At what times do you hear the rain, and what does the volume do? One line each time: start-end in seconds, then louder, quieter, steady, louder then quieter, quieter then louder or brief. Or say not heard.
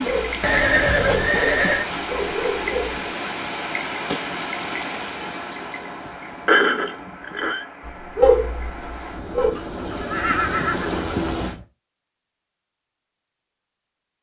0.0-11.6 quieter then louder.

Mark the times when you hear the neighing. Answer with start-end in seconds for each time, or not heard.
0.4-1.9, 6.5-7.7, 9.9-11.7.